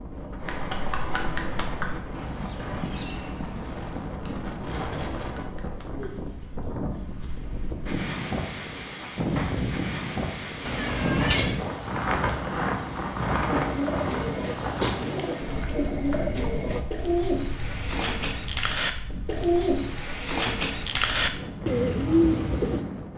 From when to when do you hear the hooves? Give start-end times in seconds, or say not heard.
0.4-7.4.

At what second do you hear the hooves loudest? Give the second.
1 s.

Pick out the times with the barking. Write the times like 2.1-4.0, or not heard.
not heard.